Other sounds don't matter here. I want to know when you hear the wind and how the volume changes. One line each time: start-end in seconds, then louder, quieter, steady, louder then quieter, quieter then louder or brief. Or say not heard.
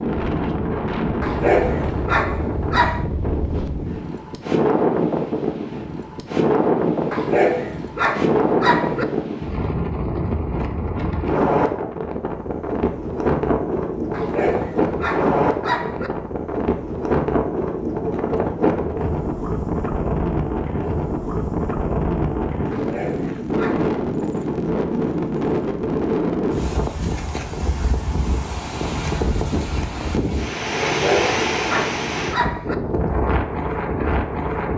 0.0-34.7 steady.